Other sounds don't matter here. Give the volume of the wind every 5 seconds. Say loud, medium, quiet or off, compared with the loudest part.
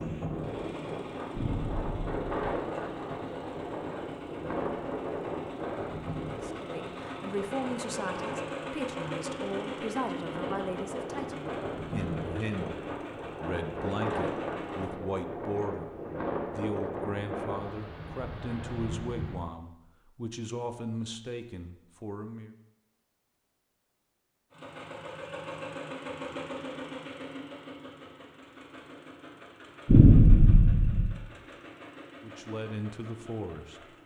loud, loud, loud, loud, off, off, off.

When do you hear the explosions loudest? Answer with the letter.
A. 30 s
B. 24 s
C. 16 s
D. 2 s
A.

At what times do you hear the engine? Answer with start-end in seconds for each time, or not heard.
0.0-14.9, 24.5-34.0.